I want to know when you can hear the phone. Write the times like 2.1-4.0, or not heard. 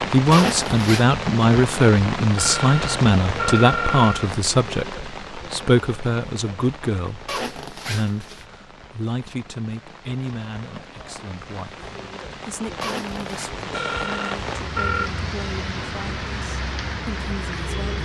2.4-4.3, 13.7-15.1.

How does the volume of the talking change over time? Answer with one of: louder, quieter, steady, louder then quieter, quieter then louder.
quieter.